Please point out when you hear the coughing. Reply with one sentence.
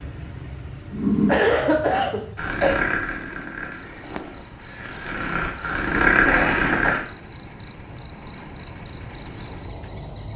You can hear the coughing from 1.2 to 2.8 s and from 5.3 to 7.0 s.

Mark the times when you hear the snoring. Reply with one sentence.
You can hear the snoring from 0.9 to 7.0 s.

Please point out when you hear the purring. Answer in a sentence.
The purring can't be heard in this clip.